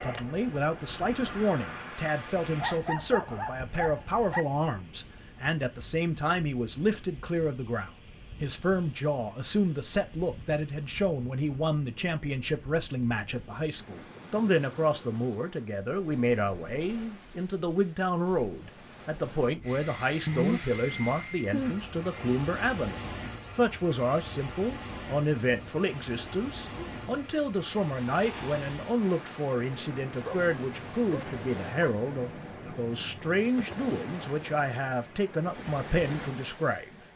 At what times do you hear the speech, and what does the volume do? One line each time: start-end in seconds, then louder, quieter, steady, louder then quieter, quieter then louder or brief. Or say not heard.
0.0-37.0 steady.